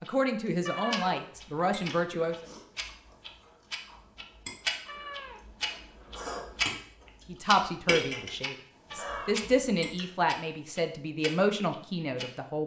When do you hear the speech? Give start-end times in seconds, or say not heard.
0.0-2.4, 7.2-12.6.